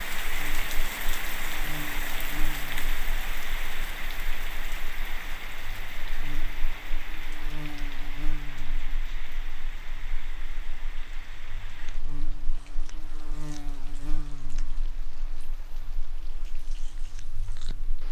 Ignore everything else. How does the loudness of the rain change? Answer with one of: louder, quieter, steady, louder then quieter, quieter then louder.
quieter.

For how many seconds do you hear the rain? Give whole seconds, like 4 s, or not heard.
18 s.